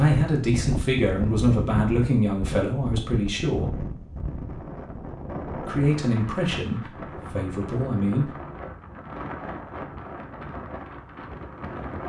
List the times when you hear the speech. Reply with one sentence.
You can hear the speech from 0.0 to 3.7 s and from 5.5 to 8.3 s.